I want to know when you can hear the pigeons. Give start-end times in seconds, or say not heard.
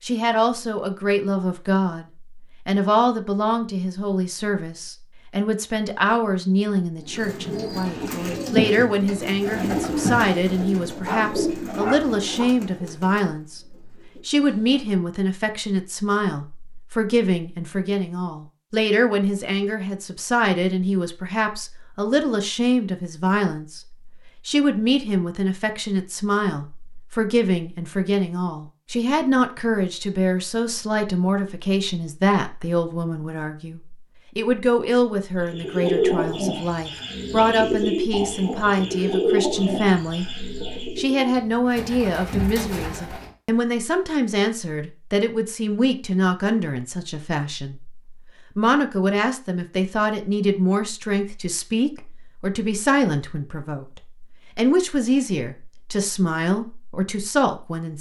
7.0-15.0, 35.5-43.3.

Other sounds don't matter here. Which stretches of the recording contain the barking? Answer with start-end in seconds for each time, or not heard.
10.6-12.4.